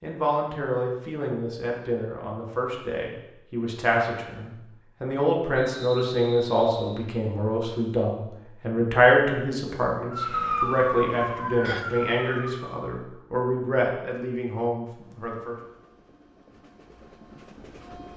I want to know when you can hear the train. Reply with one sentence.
The train can be heard from 15.0 to 18.1 s.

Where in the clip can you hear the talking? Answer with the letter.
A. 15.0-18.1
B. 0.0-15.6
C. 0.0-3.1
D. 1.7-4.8
B.